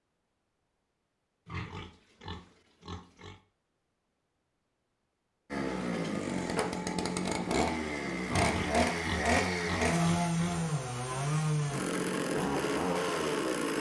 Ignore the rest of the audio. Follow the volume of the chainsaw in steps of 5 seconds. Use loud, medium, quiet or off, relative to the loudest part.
off, loud, loud.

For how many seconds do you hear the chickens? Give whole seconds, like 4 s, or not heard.
not heard.